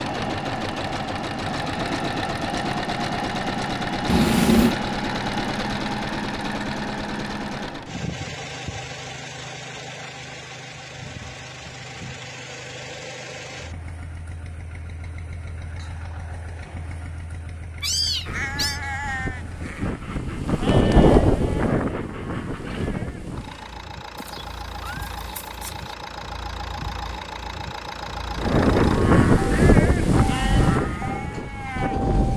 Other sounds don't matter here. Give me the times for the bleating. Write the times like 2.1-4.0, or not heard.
18.1-23.9, 28.3-32.3.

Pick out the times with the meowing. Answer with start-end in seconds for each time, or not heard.
4.0-4.8, 17.8-18.8, 24.1-25.9.